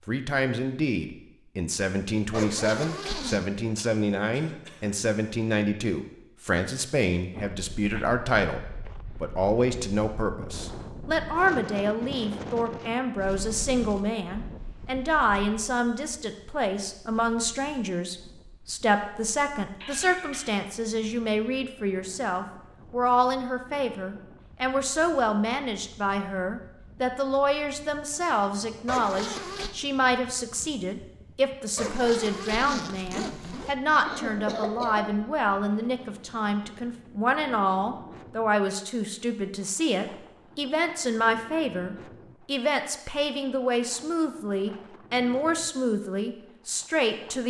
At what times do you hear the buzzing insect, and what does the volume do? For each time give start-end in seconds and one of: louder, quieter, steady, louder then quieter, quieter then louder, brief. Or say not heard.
not heard.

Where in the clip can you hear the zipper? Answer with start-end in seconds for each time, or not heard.
2.3-3.5, 28.9-29.8, 31.8-33.8.